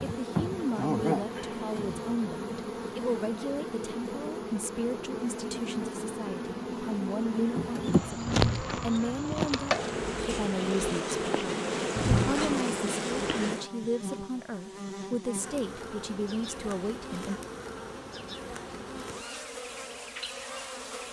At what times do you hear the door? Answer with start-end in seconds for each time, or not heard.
8.2-8.8, 11.9-12.6.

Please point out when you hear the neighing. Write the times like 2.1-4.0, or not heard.
not heard.